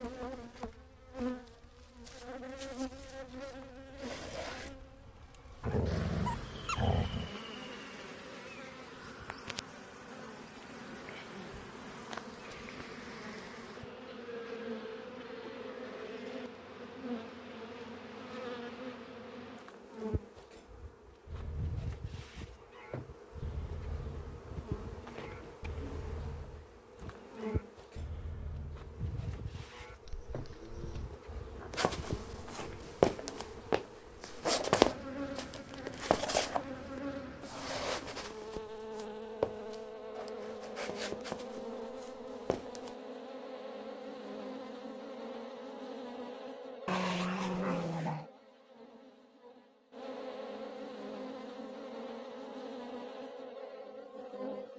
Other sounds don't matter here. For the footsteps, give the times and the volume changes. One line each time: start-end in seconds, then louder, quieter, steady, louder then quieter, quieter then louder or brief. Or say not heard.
31.7-42.9 quieter.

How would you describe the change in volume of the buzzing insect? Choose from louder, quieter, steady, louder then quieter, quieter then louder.
steady.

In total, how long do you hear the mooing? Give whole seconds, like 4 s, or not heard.
10 s.